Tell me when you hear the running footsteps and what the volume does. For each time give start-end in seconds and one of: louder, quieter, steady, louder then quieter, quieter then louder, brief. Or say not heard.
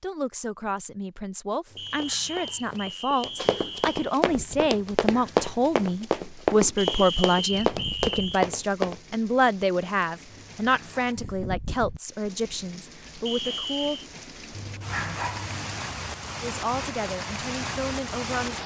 1.6-9.0 louder.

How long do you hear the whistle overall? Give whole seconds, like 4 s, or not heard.
5 s.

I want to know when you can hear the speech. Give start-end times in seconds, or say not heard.
0.0-14.1, 16.4-18.6.